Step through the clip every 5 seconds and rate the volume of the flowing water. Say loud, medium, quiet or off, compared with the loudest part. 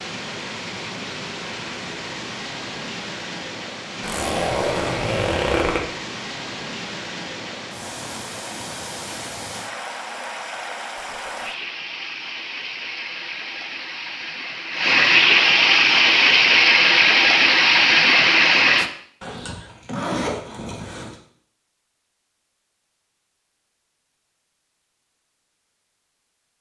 quiet, quiet, quiet, loud, off, off.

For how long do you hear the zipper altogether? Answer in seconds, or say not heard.
4 s.